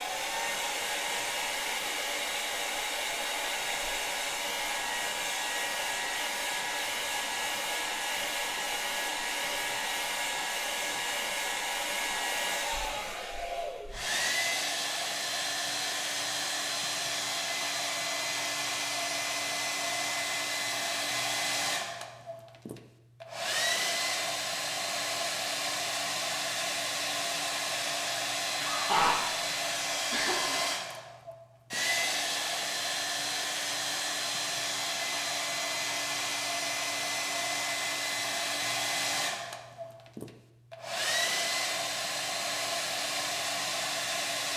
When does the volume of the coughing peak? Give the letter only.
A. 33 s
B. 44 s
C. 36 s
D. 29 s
D.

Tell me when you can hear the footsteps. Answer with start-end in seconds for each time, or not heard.
not heard.